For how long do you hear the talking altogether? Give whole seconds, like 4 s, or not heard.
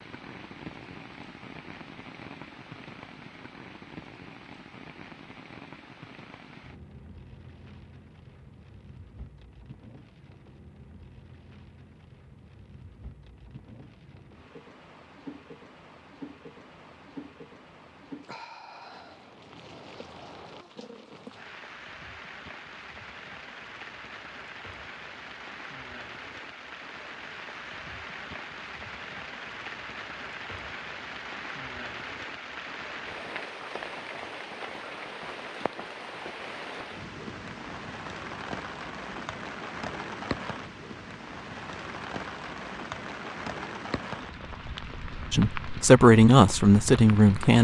2 s.